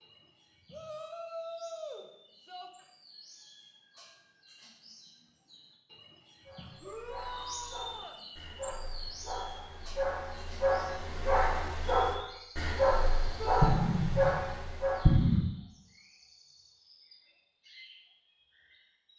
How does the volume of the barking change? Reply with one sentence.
The volume of the barking goes up.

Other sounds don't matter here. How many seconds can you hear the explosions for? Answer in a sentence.
You can hear the explosions for 2 seconds altogether.